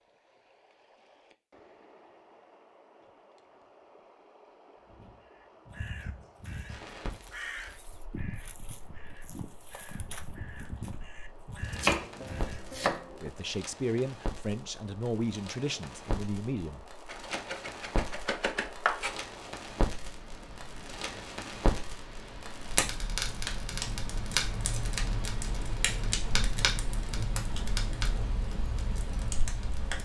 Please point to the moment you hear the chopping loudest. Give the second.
12 s.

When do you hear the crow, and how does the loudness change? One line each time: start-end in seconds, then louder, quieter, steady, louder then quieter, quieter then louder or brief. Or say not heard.
4.8-12.8 steady.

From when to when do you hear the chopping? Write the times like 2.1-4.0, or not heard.
11.7-13.3, 17.1-19.1.